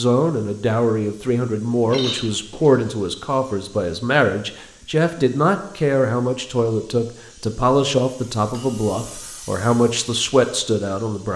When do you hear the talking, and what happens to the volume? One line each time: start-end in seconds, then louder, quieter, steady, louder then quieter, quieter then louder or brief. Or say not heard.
0.0-11.3 steady.